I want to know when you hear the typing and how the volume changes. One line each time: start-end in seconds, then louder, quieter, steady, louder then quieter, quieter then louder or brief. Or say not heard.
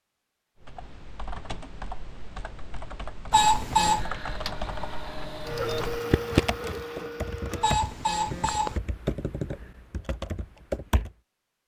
0.6-11.1 louder then quieter.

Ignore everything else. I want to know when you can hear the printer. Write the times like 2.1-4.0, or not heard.
3.8-7.7.